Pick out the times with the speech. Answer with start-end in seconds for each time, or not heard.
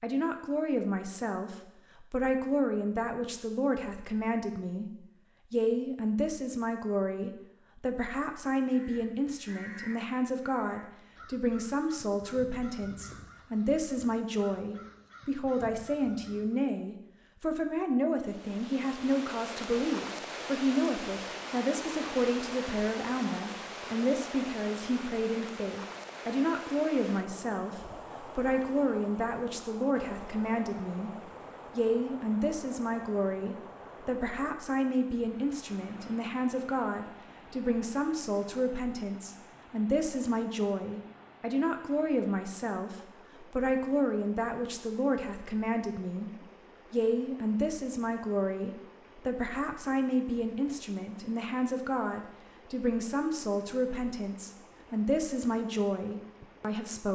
0.0-4.8, 5.5-46.3, 46.9-57.1.